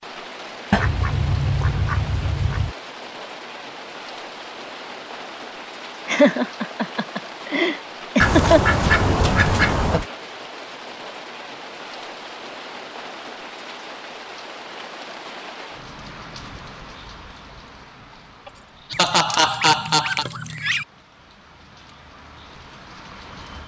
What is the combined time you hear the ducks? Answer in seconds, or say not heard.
6 s.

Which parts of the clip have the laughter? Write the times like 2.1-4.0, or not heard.
6.0-8.8, 18.4-20.2.